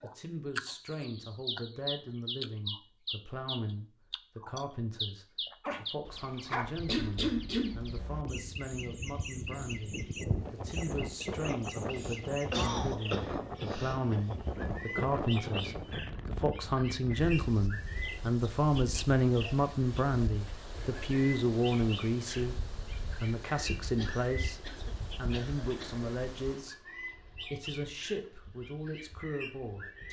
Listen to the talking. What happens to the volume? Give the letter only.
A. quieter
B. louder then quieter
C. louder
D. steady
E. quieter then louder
B.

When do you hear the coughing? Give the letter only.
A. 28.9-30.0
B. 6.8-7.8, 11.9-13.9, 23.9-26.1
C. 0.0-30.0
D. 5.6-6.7
B.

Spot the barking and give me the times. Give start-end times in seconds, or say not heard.
5.6-6.7.